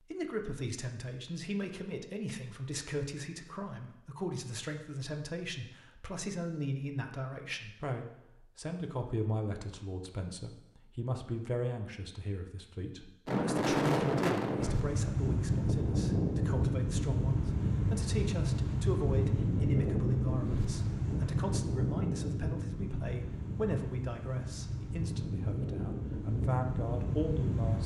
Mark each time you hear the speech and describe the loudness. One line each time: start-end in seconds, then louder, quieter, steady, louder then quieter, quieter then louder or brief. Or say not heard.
0.0-27.8 steady.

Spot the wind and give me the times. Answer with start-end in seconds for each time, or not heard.
13.2-27.8.